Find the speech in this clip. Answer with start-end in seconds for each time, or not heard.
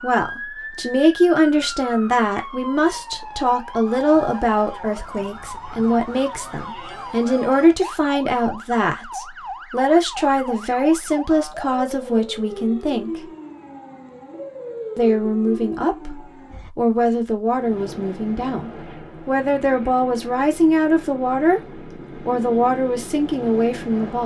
0.0-13.1, 14.9-21.6, 22.2-24.2.